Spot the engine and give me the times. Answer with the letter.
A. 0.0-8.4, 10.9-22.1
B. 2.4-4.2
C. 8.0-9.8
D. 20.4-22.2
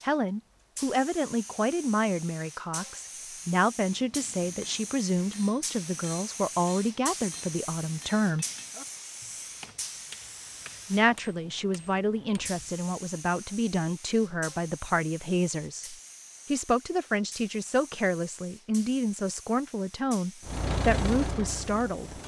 D.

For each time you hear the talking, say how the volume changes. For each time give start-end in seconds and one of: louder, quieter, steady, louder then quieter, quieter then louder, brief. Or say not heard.
0.0-8.4 steady
10.9-22.1 steady.